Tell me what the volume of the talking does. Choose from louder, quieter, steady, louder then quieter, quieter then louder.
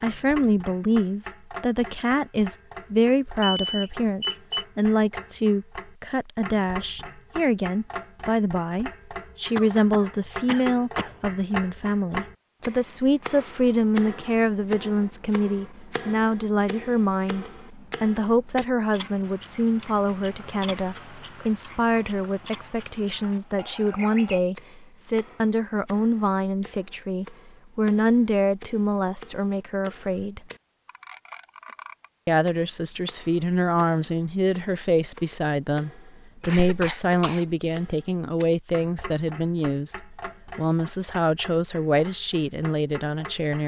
steady.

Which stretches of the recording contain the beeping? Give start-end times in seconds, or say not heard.
3.4-4.7.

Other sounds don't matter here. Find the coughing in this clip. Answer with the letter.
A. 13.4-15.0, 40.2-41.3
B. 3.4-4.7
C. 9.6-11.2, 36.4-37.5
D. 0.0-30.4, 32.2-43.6
C.